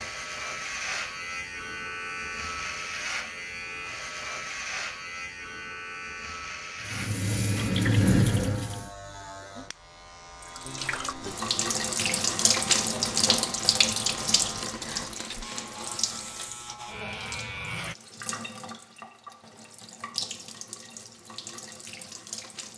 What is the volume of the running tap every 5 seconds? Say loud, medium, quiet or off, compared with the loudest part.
off, loud, loud, quiet, quiet.